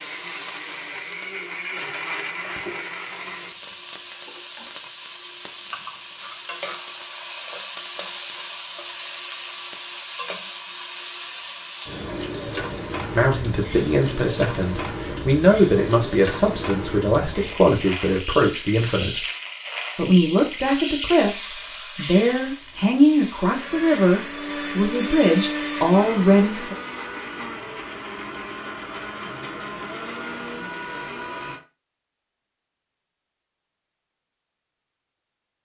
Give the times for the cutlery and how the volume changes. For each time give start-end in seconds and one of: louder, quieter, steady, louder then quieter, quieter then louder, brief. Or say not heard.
not heard.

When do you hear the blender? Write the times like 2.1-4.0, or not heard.
0.0-3.5, 23.5-31.6.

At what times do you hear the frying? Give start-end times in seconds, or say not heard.
0.0-24.1.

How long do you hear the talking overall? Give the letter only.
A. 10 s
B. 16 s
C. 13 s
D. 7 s
C.